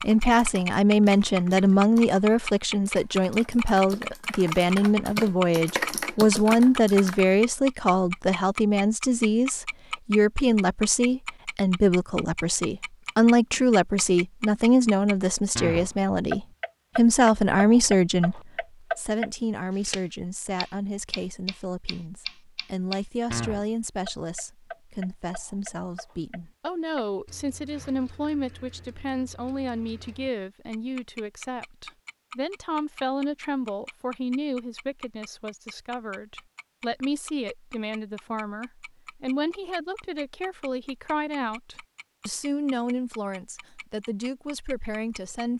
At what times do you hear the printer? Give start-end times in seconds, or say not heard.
not heard.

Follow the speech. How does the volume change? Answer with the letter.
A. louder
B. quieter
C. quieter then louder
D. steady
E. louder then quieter
B.